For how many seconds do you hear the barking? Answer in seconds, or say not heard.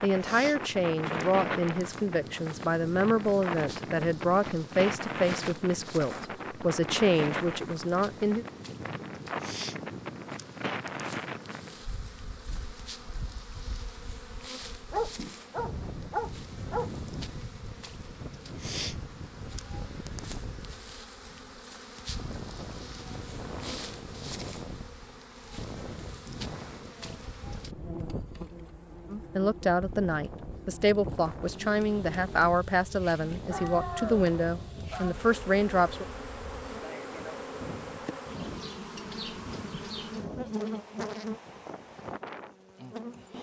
4 s.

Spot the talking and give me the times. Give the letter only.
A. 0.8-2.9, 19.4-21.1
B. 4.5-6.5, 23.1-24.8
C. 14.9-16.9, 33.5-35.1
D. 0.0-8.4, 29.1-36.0
D.